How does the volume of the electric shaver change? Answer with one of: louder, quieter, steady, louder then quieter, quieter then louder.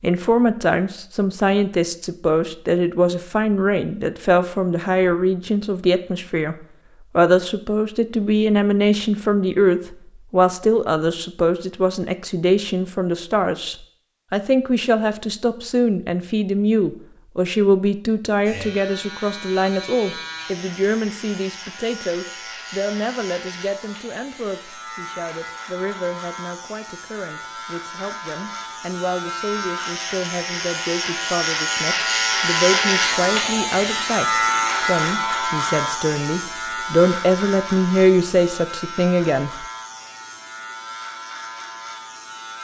louder then quieter.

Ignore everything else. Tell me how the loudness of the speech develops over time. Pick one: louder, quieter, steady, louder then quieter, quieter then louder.
quieter then louder.